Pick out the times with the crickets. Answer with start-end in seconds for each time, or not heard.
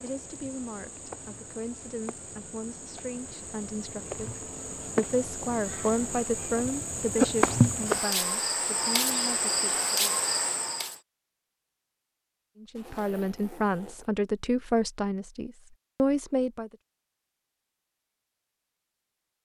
0.0-11.0.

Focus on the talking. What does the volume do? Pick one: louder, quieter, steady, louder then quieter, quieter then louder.
louder.